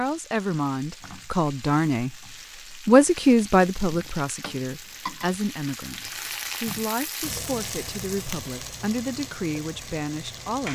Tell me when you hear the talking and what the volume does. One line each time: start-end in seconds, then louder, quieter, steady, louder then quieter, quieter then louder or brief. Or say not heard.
0.0-2.1 brief
2.9-10.7 quieter.